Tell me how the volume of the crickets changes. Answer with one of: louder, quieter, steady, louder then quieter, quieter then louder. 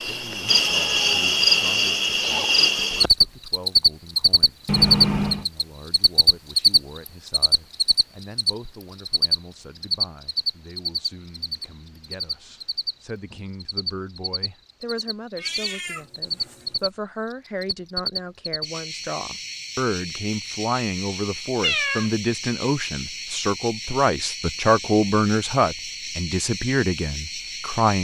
quieter.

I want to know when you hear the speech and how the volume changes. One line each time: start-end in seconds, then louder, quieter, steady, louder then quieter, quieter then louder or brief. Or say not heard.
0.0-27.9 louder.